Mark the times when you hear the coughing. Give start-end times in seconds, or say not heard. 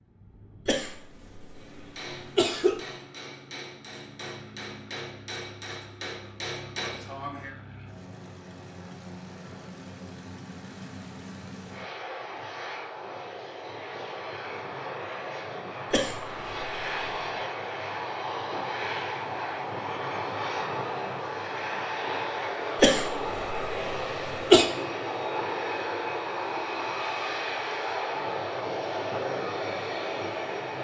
0.7-2.8, 15.9-17.3, 22.8-24.6.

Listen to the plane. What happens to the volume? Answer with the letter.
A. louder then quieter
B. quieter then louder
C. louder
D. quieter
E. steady
C.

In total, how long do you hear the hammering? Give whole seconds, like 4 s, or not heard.
6 s.